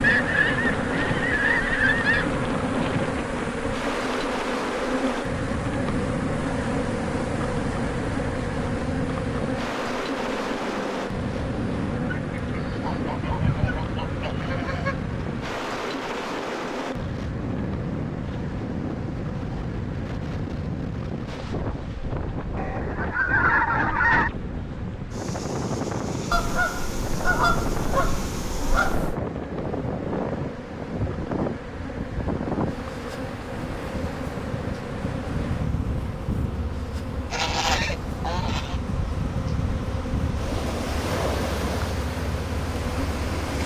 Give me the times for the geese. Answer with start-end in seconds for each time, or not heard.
0.0-2.3, 12.2-14.9, 22.6-24.3, 26.3-29.1, 37.3-38.8.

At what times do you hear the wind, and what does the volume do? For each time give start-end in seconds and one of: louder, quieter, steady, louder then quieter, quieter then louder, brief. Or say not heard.
0.0-43.6 steady.